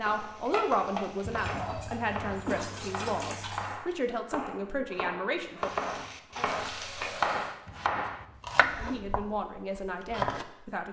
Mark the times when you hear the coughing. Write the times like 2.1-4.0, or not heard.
1.2-2.6, 7.7-8.9.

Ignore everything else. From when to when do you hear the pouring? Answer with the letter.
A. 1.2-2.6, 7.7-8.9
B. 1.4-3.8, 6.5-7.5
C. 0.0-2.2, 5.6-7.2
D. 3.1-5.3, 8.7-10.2
B.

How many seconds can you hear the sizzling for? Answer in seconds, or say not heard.
4 s.